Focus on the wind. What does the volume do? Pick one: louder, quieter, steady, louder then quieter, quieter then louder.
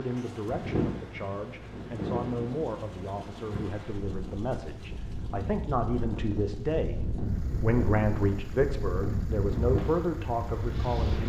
quieter then louder.